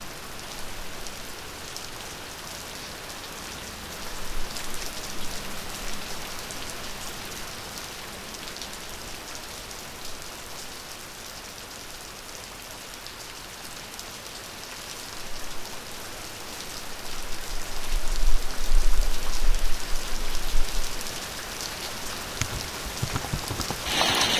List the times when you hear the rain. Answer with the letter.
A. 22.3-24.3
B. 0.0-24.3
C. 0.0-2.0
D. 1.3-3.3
B.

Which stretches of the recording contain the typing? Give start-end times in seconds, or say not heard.
22.3-24.3.